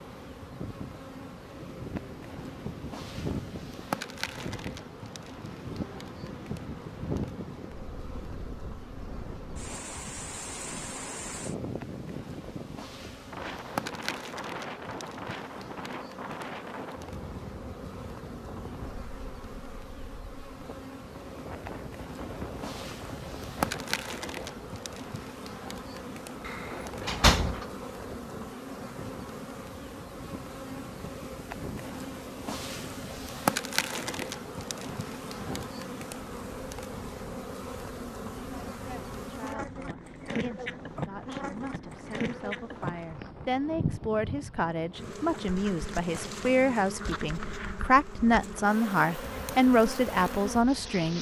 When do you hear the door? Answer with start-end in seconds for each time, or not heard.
26.4-27.6.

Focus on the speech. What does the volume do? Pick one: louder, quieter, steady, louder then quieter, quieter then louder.
louder.